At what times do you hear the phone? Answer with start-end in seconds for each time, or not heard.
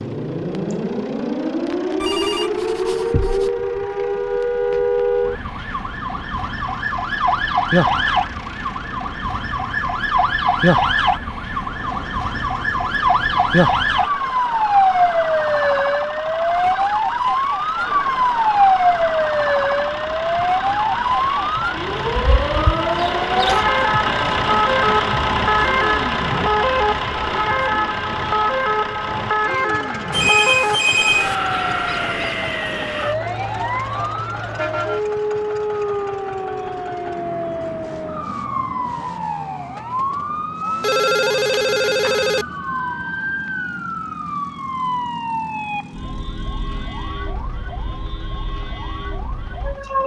2.0-3.5, 30.1-31.4, 40.8-42.5.